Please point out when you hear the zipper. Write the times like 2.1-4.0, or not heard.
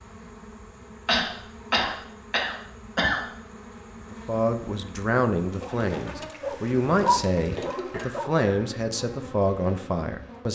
not heard.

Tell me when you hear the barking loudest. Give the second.
7 s.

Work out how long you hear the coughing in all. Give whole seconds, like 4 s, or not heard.
3 s.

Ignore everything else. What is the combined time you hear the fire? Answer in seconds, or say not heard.
not heard.